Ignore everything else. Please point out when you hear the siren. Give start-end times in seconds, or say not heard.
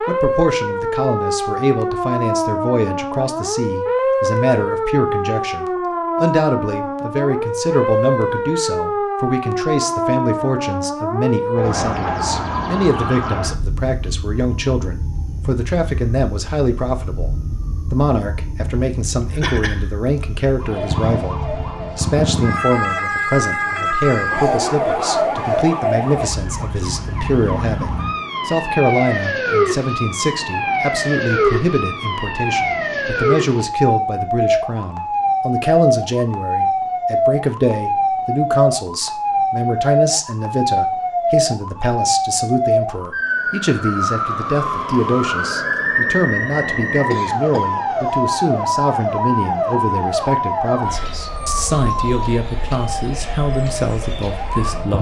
0.0-54.9.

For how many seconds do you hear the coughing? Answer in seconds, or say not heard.
2 s.